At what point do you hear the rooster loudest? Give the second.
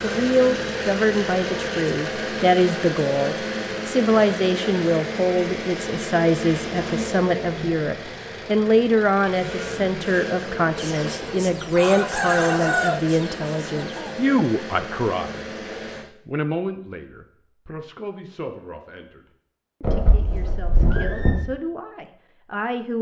13 s.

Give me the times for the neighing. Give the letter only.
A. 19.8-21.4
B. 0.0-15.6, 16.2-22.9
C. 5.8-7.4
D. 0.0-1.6
A.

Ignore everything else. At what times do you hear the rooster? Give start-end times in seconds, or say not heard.
10.8-14.2.